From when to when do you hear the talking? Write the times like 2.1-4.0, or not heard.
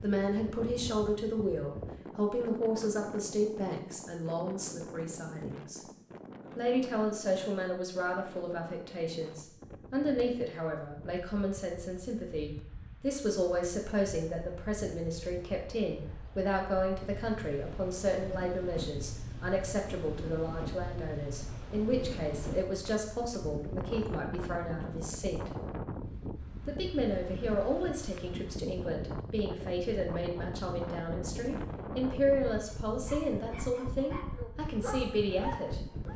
0.0-5.8, 6.5-25.5, 26.6-35.8.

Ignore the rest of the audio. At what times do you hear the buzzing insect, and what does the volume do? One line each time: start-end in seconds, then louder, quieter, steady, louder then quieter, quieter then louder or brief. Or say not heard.
not heard.